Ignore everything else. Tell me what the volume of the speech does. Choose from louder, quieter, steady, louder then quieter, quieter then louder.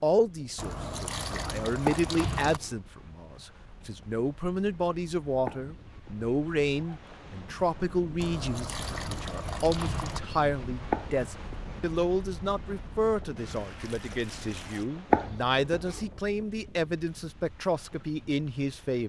steady.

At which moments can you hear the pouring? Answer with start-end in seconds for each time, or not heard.
0.6-2.6, 8.2-10.2, 13.3-14.9.